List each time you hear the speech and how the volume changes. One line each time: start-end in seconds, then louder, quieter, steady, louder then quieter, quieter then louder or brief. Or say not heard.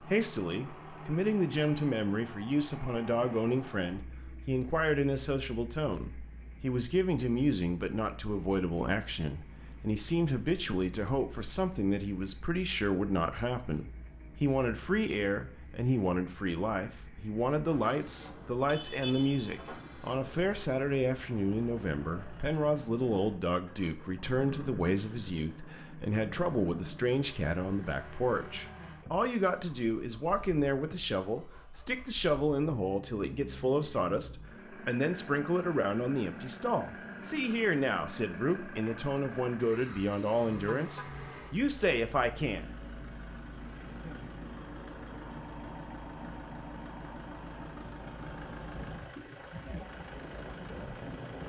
0.0-42.7 steady.